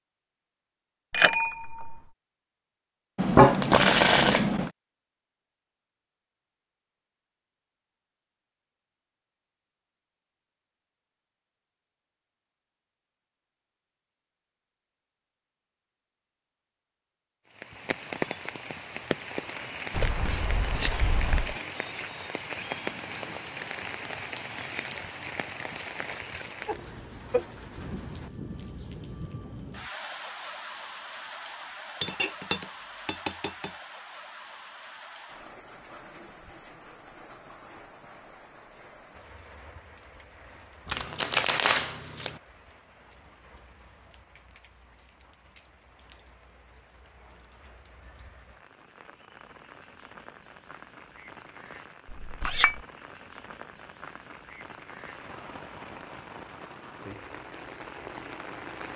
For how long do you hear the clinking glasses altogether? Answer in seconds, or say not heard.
3 s.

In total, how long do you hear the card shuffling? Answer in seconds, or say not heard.
5 s.